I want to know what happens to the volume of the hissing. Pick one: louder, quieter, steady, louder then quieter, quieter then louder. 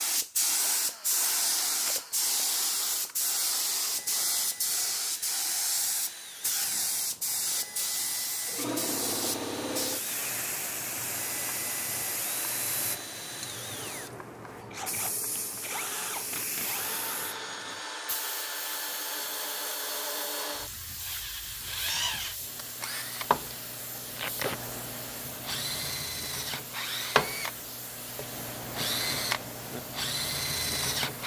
quieter.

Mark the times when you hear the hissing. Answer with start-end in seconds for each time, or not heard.
0.0-31.2.